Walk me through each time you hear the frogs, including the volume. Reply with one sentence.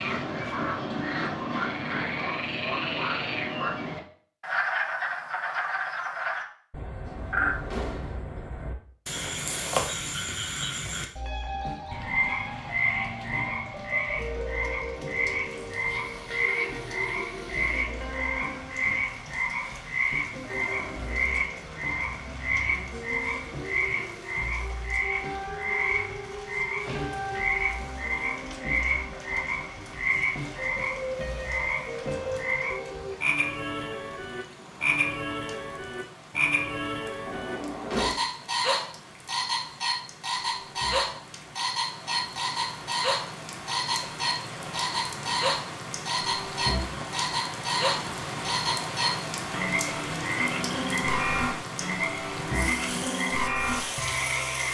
You can hear the frogs from 0.0 to 54.6 s, at a steady volume.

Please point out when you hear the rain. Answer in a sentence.
The rain can be heard from 15.5 to 54.6 s.